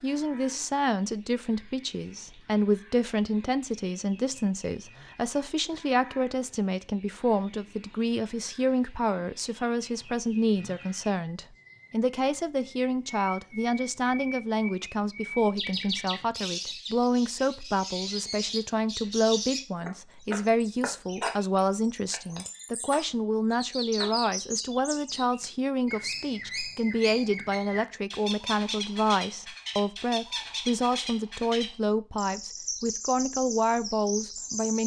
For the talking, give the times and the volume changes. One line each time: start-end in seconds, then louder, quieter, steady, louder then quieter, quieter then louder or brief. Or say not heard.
0.0-34.8 steady.